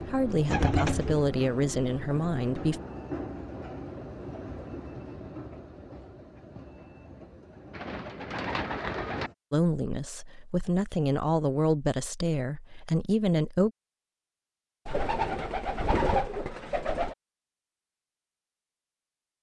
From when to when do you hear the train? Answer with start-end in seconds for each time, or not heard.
0.0-9.3.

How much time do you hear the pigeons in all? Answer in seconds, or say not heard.
5 s.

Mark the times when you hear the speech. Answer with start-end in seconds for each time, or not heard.
0.0-2.8, 9.5-13.7.